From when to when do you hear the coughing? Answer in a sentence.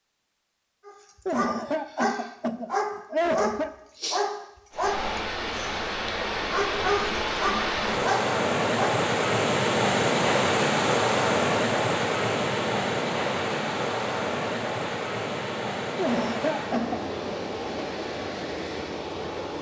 The coughing can be heard from 1.2 to 3.7 s and from 15.9 to 17.0 s.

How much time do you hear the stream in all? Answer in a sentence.
The stream can be heard for 15 seconds in total.